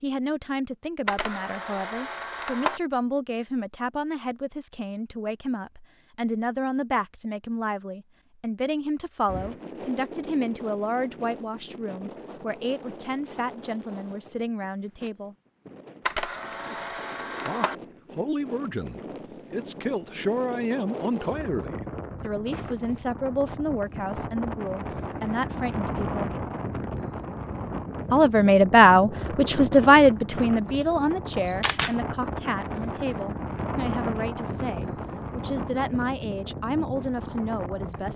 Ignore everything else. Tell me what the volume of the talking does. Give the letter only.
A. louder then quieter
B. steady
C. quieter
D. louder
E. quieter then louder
A.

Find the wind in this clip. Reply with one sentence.
You can hear the wind from 9.2 to 38.1 s.